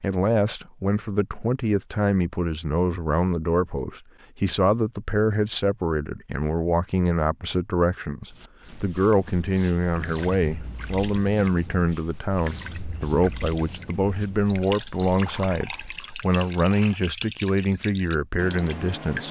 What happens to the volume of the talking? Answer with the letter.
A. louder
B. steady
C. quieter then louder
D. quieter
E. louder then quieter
B.